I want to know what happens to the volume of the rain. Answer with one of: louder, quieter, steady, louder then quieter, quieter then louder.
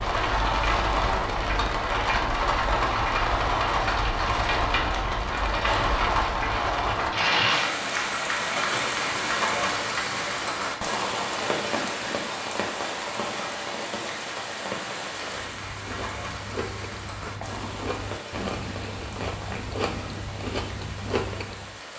quieter.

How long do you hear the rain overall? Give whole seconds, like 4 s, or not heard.
22 s.